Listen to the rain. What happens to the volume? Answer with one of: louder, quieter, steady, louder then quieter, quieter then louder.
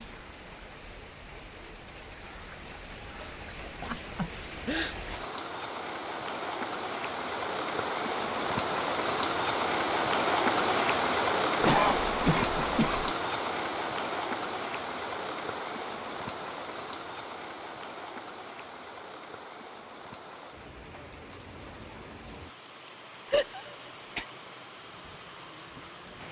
louder then quieter.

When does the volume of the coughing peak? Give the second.
12 s.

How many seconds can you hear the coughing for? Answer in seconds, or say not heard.
4 s.